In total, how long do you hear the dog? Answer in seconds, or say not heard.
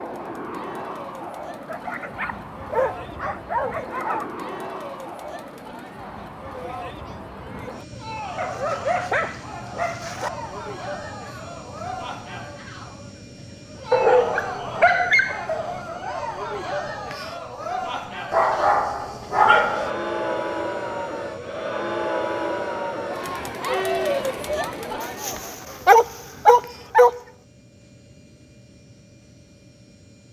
10 s.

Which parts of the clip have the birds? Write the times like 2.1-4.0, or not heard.
not heard.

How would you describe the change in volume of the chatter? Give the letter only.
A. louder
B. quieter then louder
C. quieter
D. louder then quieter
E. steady
A.